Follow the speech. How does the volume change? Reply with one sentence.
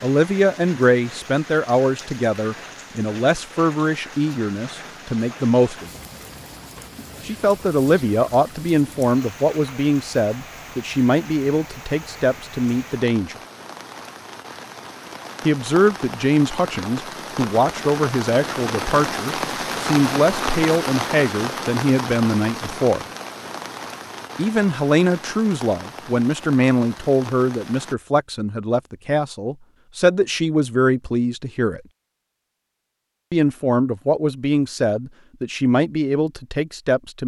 The volume of the speech stays about the same.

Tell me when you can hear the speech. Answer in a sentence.
You can hear the speech from 0.0 to 5.9 s, from 7.2 to 13.3 s, from 15.4 to 23.1 s, from 24.4 to 31.8 s and from 33.3 to 37.2 s.